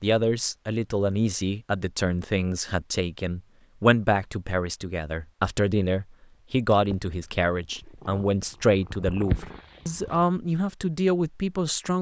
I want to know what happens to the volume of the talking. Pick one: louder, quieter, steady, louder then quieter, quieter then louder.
steady.